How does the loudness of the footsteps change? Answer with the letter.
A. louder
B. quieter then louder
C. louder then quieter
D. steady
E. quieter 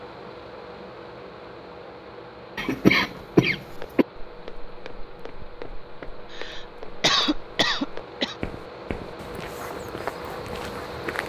A.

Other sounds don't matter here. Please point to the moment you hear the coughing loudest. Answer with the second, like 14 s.
3 s.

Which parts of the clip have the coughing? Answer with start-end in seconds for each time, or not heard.
2.5-4.0, 6.3-8.3.